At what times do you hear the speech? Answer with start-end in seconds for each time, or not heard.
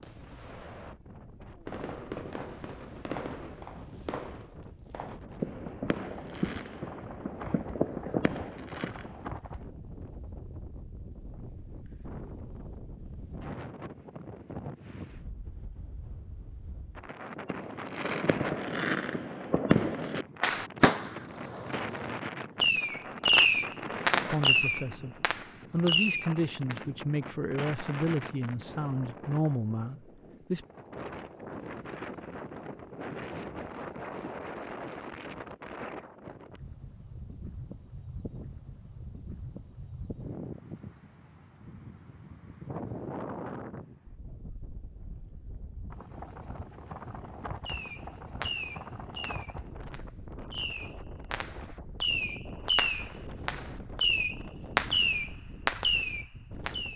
24.2-30.6.